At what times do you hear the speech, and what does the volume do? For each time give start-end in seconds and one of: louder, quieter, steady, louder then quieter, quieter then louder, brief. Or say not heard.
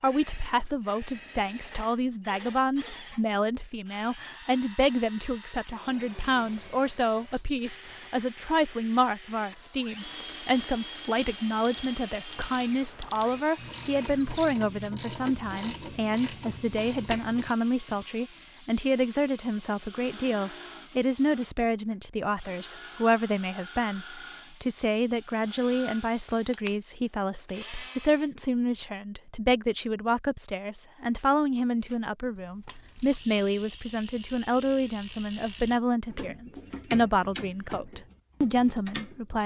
0.0-39.4 steady.